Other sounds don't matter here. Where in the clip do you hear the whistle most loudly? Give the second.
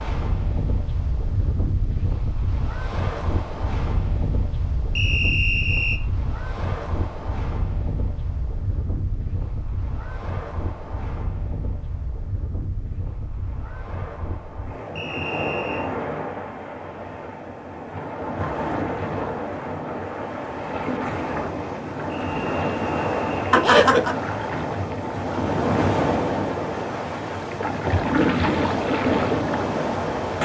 5 s.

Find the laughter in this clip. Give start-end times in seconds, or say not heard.
23.5-24.2.